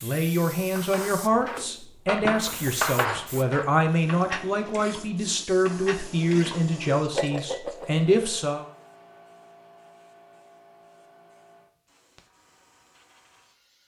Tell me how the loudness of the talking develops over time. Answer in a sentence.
The volume of the talking stays about the same.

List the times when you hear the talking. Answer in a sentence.
You can hear the talking from 0.0 to 8.7 s.